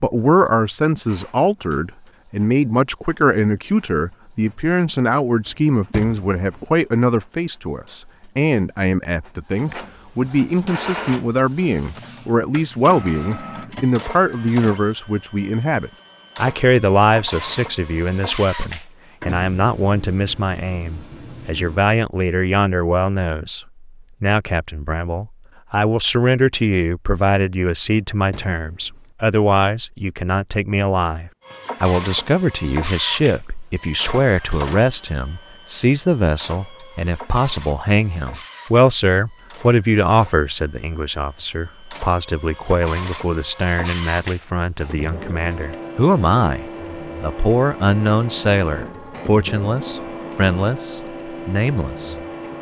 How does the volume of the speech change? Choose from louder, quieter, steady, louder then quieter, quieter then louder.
steady.